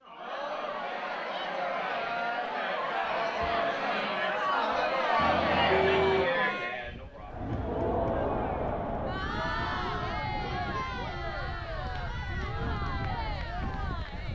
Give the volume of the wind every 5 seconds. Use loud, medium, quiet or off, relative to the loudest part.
off, loud, loud.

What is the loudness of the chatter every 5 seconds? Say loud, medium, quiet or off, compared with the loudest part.
loud, loud, medium.